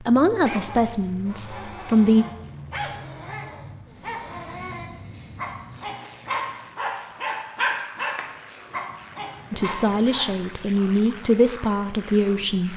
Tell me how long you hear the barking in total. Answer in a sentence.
The barking can be heard for 10 seconds in total.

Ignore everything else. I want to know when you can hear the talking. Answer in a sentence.
The talking can be heard from 0.0 to 2.2 s and from 9.5 to 12.7 s.